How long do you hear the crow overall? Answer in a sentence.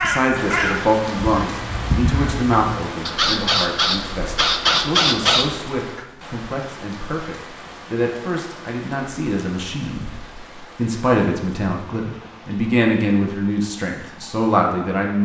You can hear the crow for 6 seconds altogether.